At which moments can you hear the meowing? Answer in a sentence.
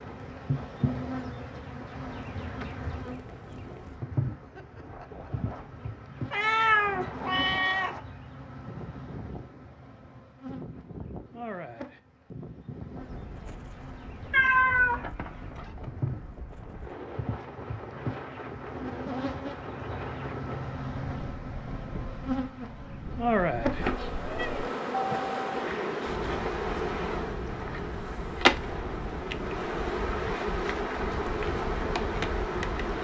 You can hear the meowing from 6.3 to 8.0 s, from 14.3 to 15.7 s and from 23.6 to 24.7 s.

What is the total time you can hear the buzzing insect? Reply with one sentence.
You can hear the buzzing insect for 33 seconds altogether.